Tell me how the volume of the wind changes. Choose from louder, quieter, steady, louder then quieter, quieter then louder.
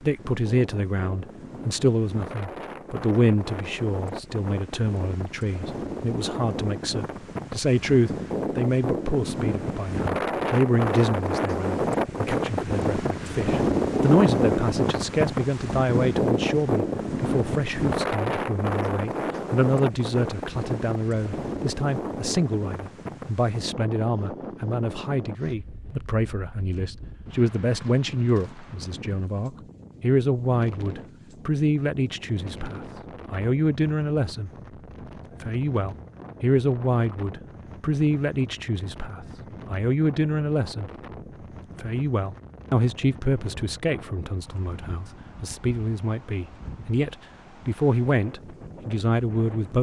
louder then quieter.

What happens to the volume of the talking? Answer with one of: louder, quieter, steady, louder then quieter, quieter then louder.
steady.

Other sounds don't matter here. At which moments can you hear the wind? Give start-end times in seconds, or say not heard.
0.0-49.7.